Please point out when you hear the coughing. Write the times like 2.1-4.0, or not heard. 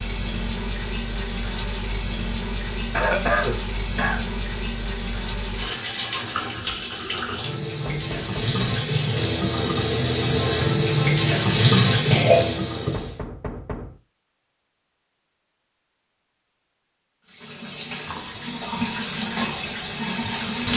2.9-4.2, 12.1-12.9.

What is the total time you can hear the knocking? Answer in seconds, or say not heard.
2 s.